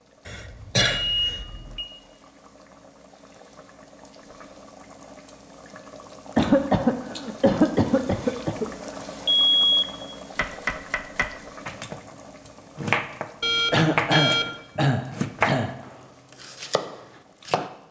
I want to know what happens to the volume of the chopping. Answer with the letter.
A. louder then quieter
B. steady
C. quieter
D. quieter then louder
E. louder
A.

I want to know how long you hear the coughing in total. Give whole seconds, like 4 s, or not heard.
6 s.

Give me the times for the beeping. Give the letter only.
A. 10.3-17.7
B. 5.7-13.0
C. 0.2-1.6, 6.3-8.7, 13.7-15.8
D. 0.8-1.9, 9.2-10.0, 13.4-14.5
D.